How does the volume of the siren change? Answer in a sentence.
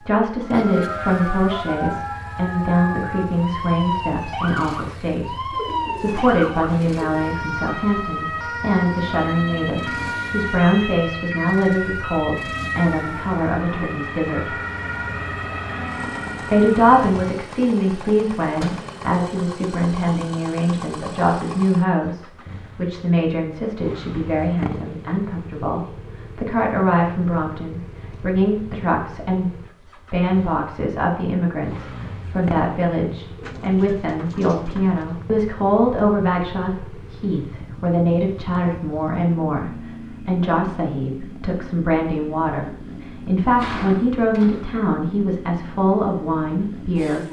The loudness of the siren stays about the same.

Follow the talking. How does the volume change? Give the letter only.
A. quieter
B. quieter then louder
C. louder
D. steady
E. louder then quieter
D.